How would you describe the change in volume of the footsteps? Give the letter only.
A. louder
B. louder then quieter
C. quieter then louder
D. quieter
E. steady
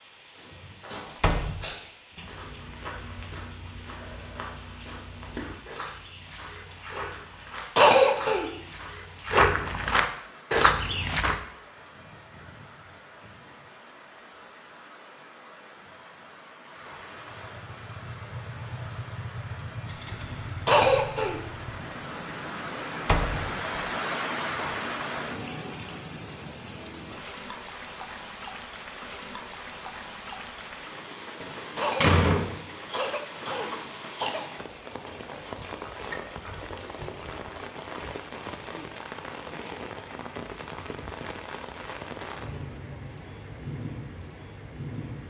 A.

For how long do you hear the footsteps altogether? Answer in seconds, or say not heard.
11 s.